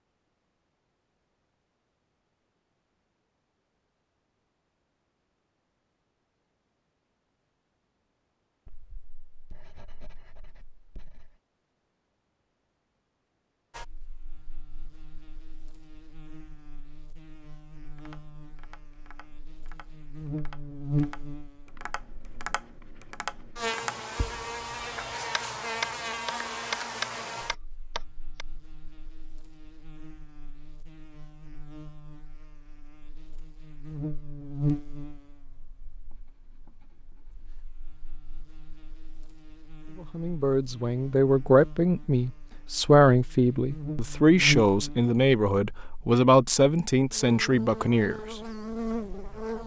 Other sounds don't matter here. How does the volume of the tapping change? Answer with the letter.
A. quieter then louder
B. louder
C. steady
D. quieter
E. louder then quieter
B.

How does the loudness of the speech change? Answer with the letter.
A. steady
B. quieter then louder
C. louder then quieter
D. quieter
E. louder
A.